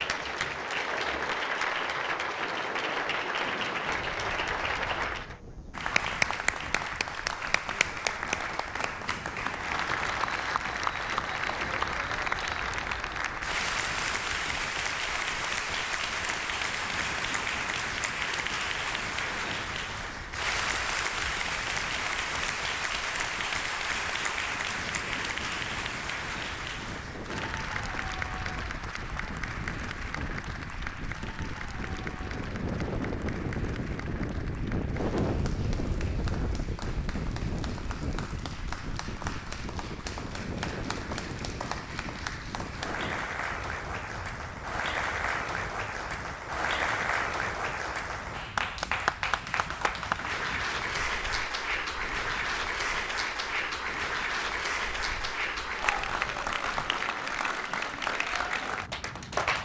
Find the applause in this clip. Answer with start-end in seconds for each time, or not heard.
0.0-59.6.